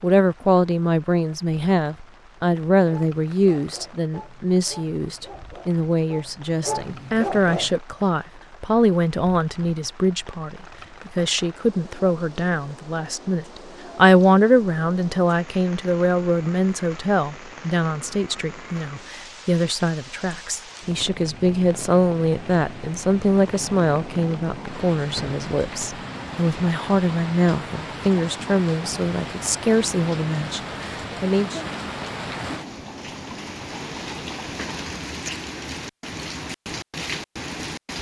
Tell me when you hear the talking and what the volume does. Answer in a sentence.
The talking can be heard from 0.0 to 31.6 s, at a steady volume.